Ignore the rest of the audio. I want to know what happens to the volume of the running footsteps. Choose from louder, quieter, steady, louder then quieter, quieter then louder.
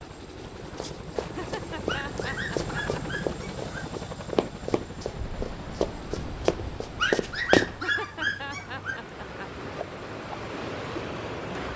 louder.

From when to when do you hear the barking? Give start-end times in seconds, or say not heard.
1.9-3.9, 7.0-9.0.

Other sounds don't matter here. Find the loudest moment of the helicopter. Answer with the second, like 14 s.
3 s.